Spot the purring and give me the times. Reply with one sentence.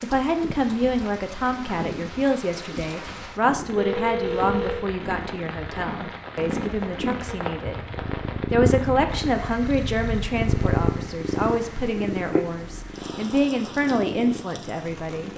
The purring can be heard from 0.0 to 15.3 s.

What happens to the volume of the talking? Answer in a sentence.
The loudness of the talking stays about the same.